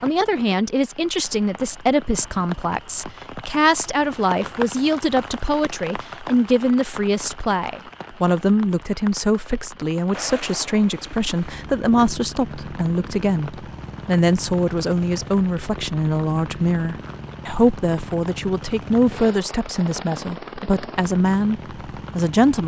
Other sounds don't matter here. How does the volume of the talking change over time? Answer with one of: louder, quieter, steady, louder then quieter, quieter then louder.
steady.